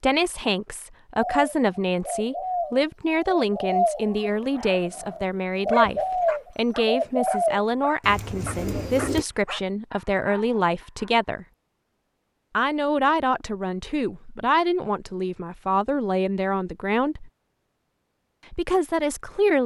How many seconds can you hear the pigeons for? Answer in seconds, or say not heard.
8 s.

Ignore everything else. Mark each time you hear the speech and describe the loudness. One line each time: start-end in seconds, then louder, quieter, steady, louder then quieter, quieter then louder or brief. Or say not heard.
0.0-11.4 steady
12.6-17.3 steady
18.5-19.6 brief.